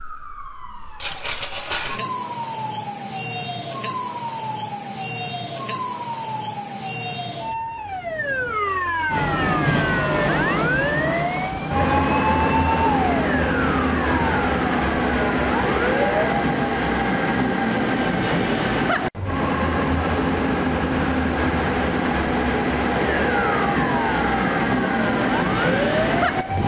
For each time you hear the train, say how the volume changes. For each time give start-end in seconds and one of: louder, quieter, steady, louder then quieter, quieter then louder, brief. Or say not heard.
9.1-26.6 steady.